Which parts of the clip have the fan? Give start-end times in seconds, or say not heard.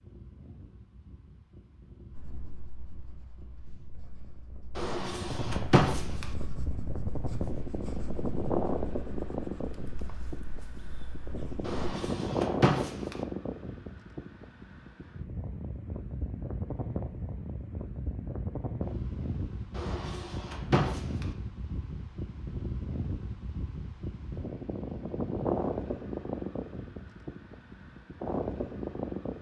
0.0-29.3.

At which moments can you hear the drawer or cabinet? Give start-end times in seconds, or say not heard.
4.8-6.2, 11.7-13.2, 19.8-21.2.